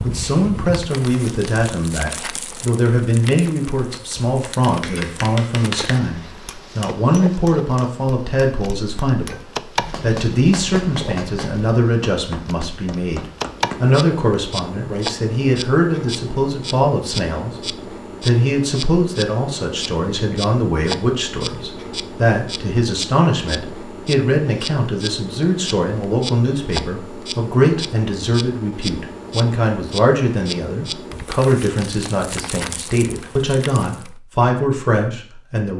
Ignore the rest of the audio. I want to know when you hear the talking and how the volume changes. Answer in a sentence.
The talking can be heard from 0.0 to 35.7 s, at a steady volume.